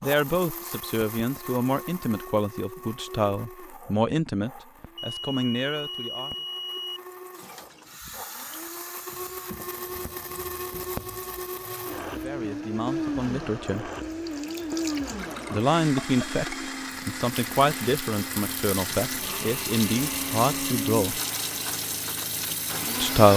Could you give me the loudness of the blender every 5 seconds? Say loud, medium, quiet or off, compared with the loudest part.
medium, medium, loud, loud, loud.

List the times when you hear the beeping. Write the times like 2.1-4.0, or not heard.
5.0-7.0.